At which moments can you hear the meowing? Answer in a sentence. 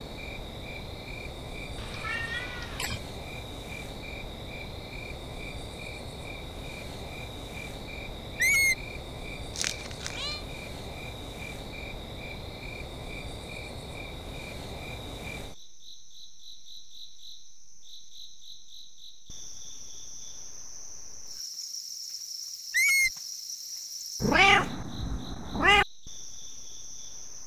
You can hear the meowing from 1.8 to 3.0 s, from 9.6 to 10.4 s and from 24.2 to 25.9 s.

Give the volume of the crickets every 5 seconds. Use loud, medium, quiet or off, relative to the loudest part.
loud, loud, loud, medium, loud, medium.